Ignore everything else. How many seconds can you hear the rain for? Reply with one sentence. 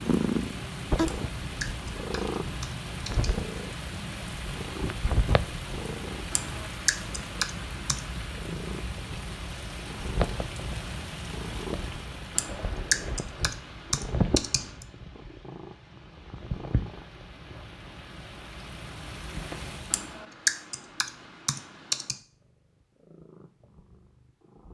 You can hear the rain for 20 seconds altogether.